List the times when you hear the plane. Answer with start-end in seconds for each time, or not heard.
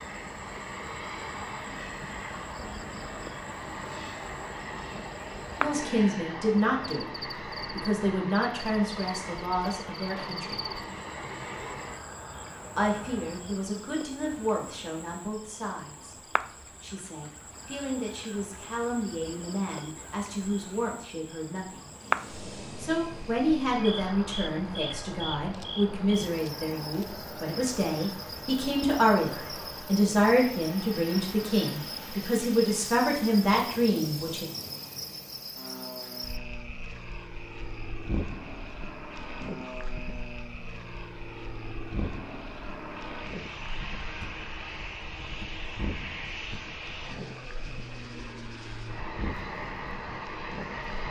0.0-13.7, 21.9-51.0.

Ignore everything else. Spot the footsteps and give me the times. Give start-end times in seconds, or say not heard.
not heard.